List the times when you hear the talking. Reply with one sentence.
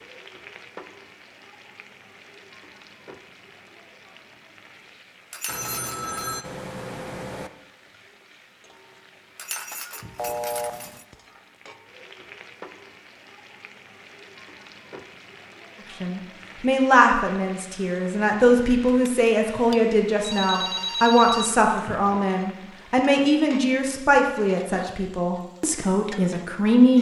You can hear the talking from 16.0 to 26.9 s.